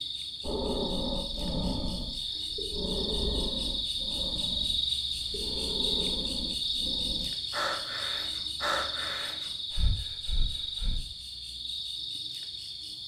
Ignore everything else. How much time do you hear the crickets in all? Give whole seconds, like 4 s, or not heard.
13 s.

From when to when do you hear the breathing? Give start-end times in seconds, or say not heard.
0.4-11.1.